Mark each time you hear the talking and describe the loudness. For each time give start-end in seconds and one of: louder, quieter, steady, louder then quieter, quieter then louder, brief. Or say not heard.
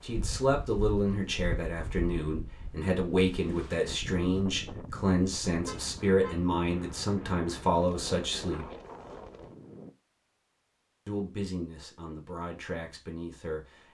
0.0-8.7 steady
11.1-13.8 brief.